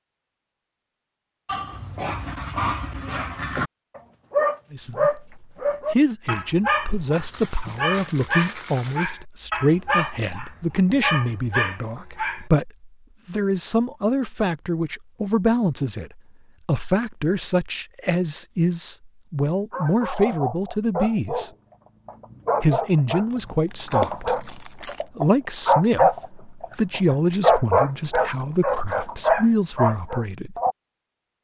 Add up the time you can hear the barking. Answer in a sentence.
The barking can be heard for 22 seconds in total.